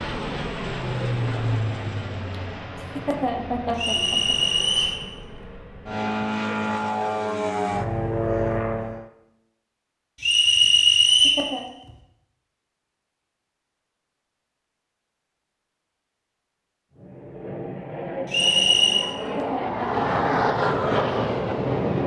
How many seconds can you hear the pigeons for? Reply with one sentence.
You can't hear the pigeons here.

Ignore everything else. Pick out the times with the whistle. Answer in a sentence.
You can hear the whistle from 3.8 to 5.0 s, from 10.2 to 11.4 s and from 18.3 to 19.1 s.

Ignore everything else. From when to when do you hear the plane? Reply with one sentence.
You can hear the plane from 0.0 to 9.1 s and from 16.9 to 22.0 s.